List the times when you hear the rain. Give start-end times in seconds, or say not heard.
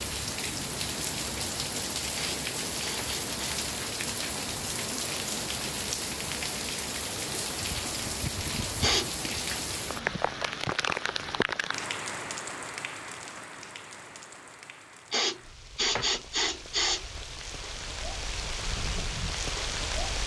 0.0-20.2.